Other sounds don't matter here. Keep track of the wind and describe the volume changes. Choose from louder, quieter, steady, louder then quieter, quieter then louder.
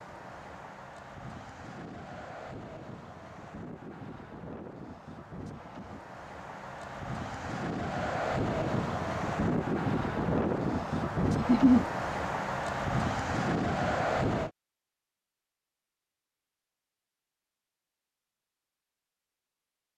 louder.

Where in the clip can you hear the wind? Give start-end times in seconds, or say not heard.
0.0-14.5.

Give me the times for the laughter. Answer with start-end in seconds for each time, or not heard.
11.3-11.8.